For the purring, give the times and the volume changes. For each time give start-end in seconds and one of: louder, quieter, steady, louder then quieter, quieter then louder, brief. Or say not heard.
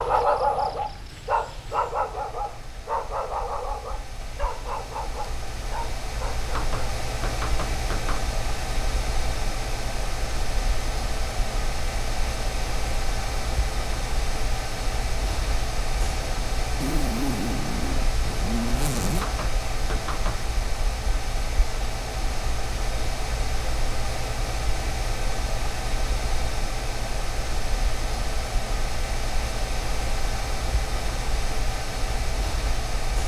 not heard.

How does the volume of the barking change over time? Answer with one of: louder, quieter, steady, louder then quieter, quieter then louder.
quieter.